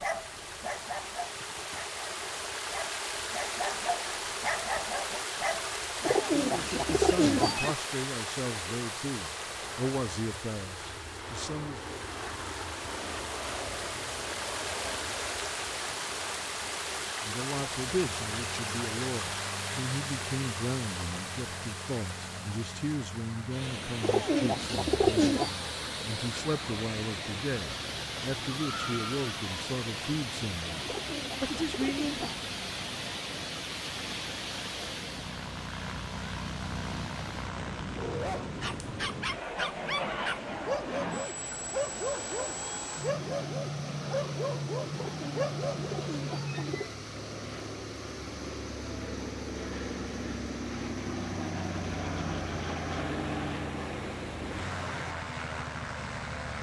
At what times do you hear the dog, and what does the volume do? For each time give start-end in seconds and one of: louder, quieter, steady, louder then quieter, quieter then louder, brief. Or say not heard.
0.0-6.2 quieter then louder
38.0-45.9 steady.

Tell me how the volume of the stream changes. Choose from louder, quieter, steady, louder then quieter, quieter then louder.
quieter.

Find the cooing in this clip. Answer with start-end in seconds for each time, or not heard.
6.0-7.8, 24.0-25.6, 30.8-32.4, 44.9-47.0.